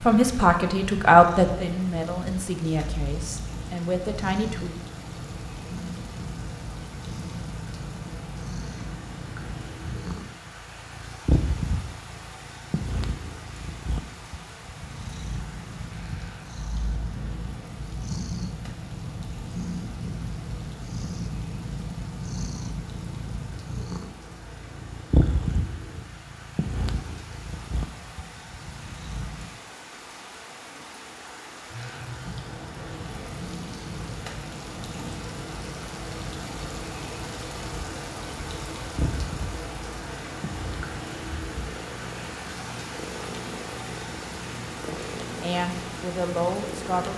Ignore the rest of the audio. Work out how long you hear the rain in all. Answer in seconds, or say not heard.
47 s.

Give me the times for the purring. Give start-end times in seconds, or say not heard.
0.0-29.6, 32.2-47.1.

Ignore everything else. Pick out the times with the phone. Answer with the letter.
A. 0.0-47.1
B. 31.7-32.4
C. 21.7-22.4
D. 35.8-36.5
B.